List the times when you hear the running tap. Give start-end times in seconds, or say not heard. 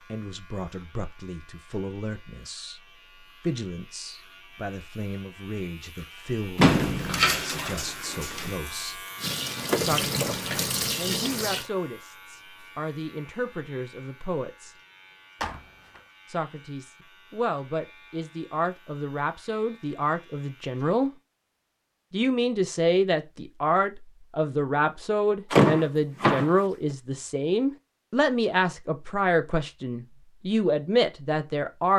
9.2-11.7.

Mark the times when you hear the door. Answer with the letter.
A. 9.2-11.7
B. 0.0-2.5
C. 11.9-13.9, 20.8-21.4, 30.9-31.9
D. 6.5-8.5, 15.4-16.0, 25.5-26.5
D.